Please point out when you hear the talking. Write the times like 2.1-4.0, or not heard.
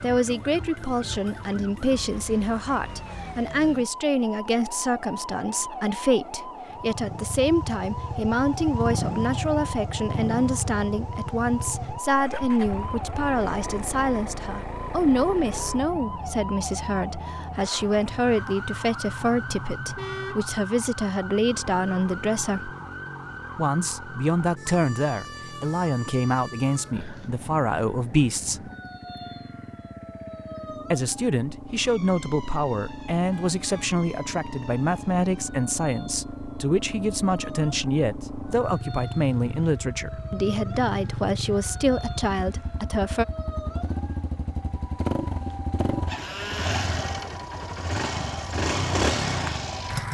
0.0-22.7, 23.6-28.7, 30.9-43.2.